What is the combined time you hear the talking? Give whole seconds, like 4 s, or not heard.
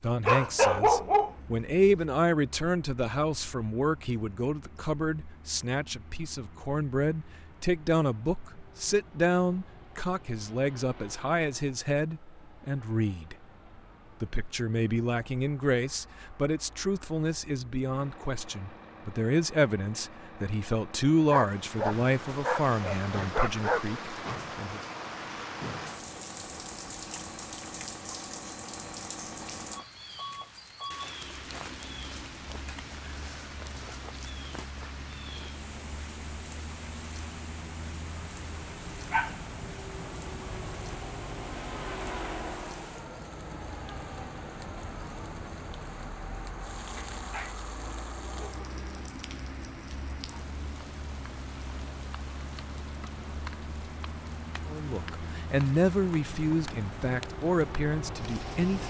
28 s.